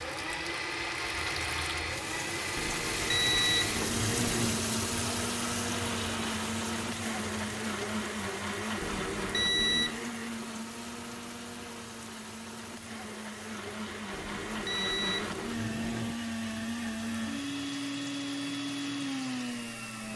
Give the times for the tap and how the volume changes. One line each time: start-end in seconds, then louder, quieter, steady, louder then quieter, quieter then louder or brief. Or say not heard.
0.0-20.1 quieter.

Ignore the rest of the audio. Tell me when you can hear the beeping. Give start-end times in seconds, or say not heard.
2.5-4.6, 8.8-10.0, 14.1-16.1.